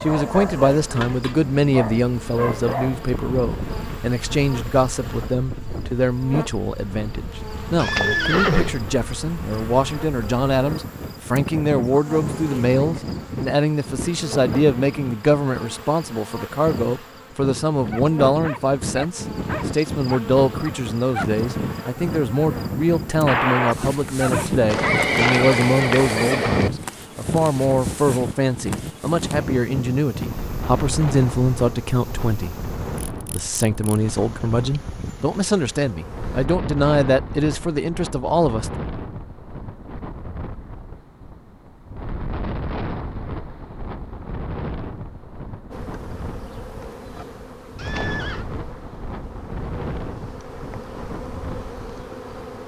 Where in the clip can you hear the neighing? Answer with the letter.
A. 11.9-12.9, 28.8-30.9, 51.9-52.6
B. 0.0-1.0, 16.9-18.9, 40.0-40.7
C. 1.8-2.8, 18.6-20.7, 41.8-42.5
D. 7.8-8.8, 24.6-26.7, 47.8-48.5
D.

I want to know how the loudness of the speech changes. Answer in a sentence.
The volume of the speech stays about the same.